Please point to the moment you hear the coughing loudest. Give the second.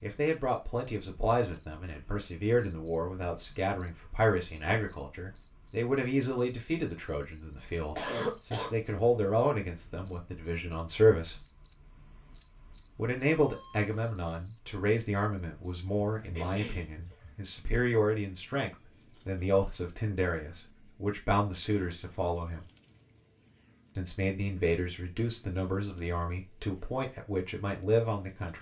8 s.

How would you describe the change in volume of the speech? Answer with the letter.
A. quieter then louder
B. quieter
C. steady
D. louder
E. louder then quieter
C.